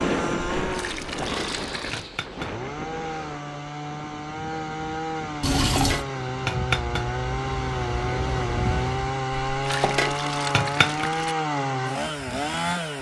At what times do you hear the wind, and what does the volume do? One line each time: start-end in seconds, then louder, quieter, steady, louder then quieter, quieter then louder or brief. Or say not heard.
0.0-9.2 quieter then louder.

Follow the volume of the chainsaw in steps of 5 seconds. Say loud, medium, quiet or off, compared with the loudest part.
medium, loud, loud.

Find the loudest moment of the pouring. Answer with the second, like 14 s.
6 s.